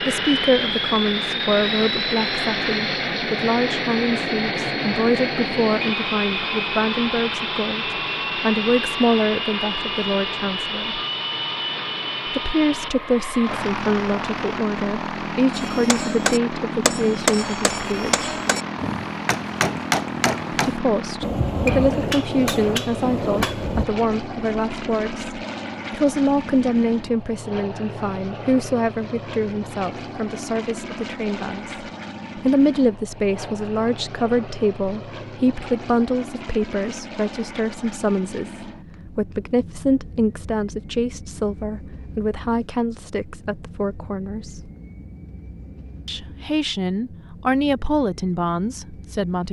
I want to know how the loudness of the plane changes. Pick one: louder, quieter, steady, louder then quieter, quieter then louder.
quieter.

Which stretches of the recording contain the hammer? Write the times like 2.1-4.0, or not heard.
15.5-23.9.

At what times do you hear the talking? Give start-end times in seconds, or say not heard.
0.0-11.0, 12.2-18.3, 20.6-44.7, 46.0-49.4.